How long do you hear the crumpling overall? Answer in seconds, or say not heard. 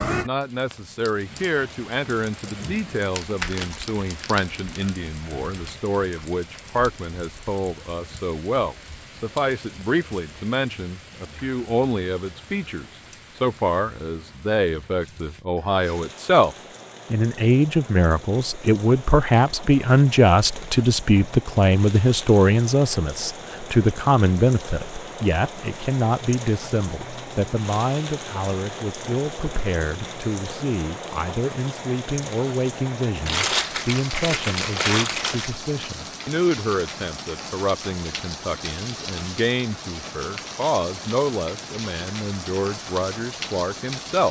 4 s.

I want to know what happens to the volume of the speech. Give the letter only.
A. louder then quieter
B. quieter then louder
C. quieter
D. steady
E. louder
A.